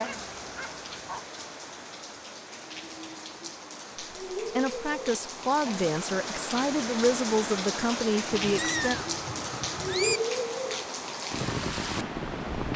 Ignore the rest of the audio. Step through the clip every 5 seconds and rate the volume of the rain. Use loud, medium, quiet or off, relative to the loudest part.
medium, loud, loud.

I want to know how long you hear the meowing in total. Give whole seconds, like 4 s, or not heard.
2 s.